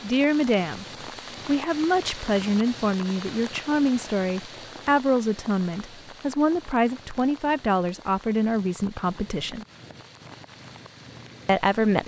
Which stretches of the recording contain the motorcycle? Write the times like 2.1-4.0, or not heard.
not heard.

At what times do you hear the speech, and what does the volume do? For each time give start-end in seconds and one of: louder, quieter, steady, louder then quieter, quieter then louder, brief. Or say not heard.
0.0-0.8 brief
1.4-9.7 steady
11.4-12.0 brief.